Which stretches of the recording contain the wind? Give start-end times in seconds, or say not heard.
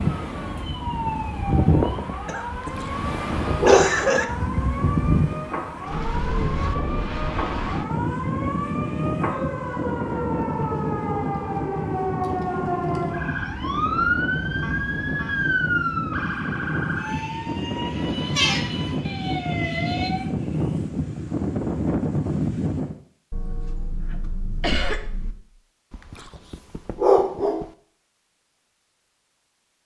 0.0-23.0.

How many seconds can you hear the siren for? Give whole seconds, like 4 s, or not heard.
20 s.